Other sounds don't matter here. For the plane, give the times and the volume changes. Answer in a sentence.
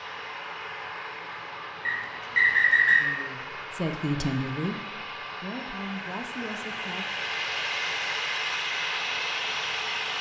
You can hear the plane from 0.0 to 10.1 s, getting louder.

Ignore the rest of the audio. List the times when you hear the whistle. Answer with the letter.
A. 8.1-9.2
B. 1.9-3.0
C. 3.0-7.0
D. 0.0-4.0
B.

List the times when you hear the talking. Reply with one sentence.
You can hear the talking from 3.0 to 7.0 s.